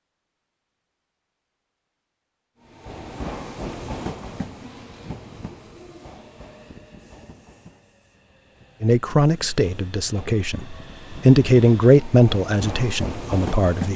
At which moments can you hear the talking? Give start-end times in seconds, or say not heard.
8.8-13.9.